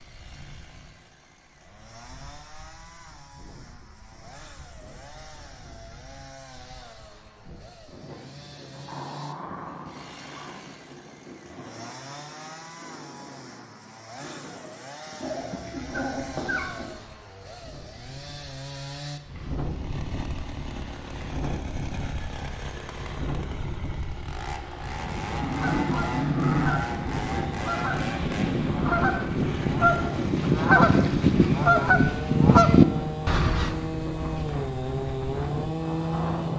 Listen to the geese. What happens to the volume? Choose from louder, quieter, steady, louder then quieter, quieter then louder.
louder.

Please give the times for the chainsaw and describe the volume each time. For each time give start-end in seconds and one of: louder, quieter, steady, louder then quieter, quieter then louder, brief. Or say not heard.
0.0-36.5 louder.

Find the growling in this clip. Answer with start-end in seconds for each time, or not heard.
8.7-10.6, 15.2-16.9, 25.4-26.8.